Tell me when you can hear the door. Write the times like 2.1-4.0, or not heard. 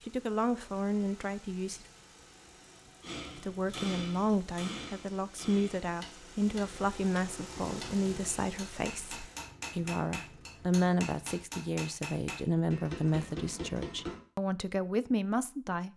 not heard.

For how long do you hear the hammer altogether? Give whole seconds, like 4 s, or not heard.
11 s.